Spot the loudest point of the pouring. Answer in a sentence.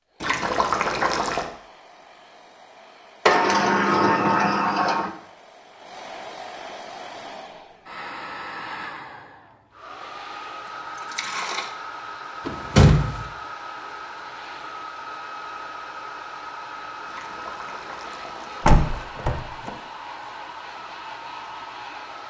The loudest moment of the pouring is at 1 second.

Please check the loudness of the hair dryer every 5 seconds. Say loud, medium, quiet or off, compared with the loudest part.
quiet, loud, loud, loud, loud.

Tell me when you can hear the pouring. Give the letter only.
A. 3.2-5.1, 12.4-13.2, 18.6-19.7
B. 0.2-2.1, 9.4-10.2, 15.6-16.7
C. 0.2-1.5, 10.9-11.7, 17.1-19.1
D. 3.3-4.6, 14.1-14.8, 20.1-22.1
C.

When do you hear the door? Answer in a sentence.
The door can be heard from 3.2 to 5.1 s, from 12.4 to 13.2 s and from 18.6 to 19.7 s.